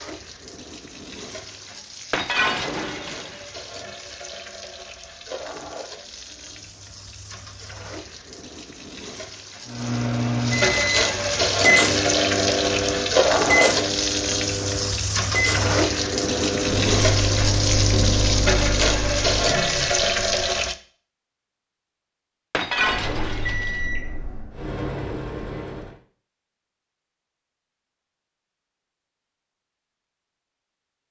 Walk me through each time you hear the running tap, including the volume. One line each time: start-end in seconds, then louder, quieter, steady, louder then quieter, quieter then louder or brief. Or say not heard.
0.0-20.8 louder.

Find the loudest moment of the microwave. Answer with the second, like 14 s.
12 s.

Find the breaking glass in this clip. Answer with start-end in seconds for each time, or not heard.
2.1-3.5, 22.5-23.9.